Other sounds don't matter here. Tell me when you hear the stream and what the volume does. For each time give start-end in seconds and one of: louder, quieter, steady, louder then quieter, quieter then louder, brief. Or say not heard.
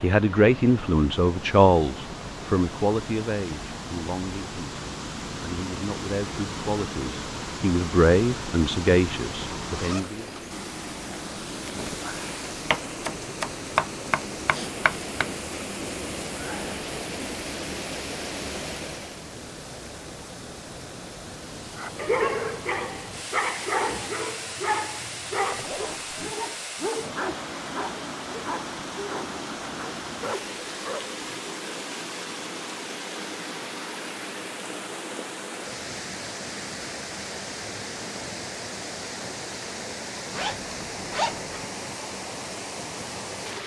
0.0-43.6 steady.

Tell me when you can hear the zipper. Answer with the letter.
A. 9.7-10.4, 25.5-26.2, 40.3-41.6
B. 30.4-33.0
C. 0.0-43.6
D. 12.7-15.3
A.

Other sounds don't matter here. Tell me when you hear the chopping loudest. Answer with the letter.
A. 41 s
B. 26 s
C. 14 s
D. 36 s
C.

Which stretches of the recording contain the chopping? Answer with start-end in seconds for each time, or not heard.
12.7-15.3.